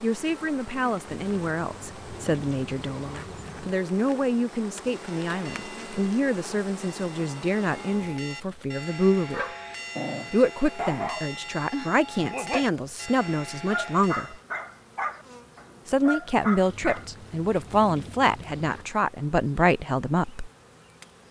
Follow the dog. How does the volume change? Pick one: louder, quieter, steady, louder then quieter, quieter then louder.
steady.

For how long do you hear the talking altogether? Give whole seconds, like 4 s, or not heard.
18 s.